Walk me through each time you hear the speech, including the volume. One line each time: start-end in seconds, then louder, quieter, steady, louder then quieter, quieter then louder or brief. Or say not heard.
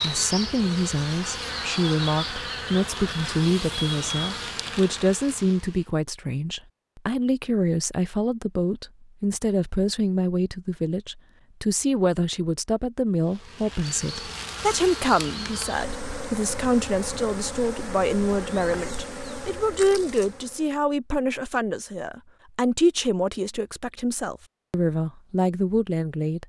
0.0-26.4 steady.